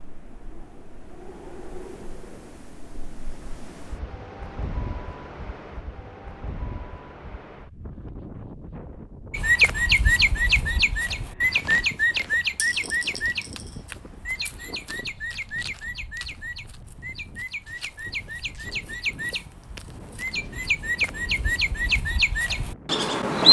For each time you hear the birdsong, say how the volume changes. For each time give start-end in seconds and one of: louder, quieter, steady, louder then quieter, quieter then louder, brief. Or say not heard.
9.3-23.4 quieter then louder.